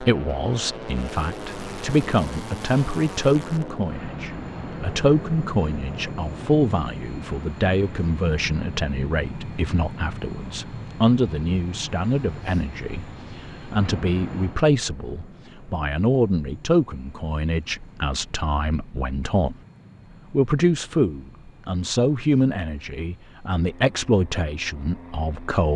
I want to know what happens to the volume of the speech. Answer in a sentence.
The volume of the speech stays about the same.